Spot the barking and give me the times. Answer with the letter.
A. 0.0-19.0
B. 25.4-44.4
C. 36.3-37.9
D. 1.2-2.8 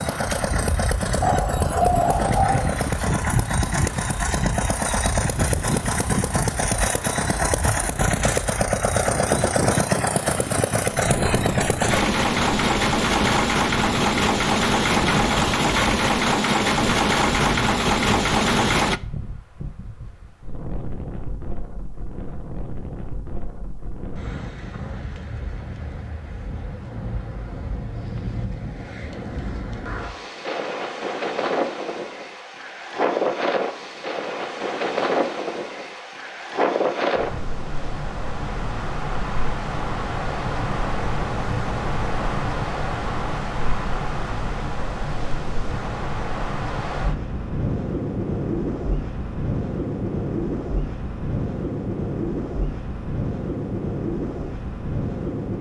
D.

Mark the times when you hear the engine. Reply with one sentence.
You can hear the engine from 0.0 to 19.0 s.